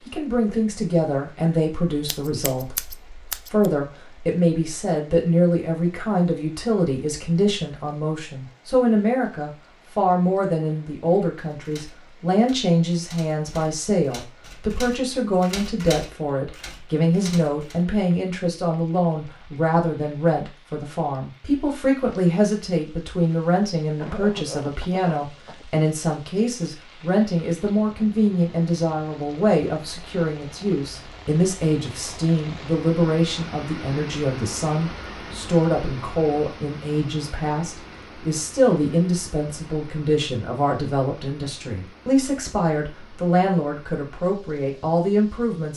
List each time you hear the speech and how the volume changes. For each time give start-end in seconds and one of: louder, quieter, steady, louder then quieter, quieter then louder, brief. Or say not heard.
0.1-45.7 steady.